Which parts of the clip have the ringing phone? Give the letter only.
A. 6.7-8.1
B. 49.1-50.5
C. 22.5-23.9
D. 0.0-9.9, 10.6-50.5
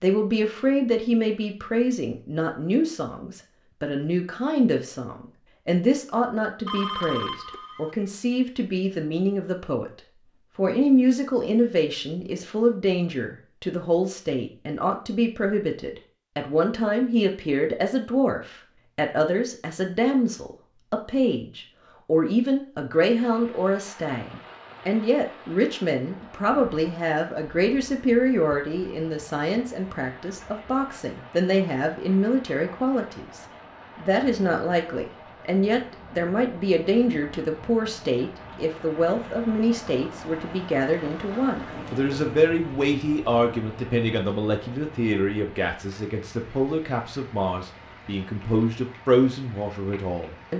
A.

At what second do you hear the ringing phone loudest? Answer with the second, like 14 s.
7 s.